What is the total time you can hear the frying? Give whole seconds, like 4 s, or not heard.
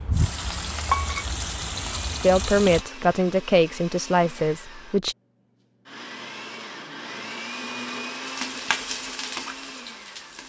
5 s.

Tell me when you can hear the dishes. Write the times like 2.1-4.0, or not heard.
not heard.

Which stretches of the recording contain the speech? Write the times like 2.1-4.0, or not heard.
2.2-5.2.